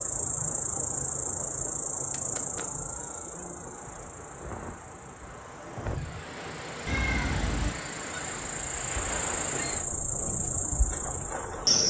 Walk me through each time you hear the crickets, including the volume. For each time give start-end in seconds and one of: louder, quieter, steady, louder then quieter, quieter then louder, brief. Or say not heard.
0.0-11.8 quieter then louder.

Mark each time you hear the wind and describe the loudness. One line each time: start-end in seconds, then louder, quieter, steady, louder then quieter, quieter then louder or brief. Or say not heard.
3.7-11.7 louder then quieter.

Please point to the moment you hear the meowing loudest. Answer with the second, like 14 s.
7 s.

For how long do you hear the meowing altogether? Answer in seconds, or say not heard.
3 s.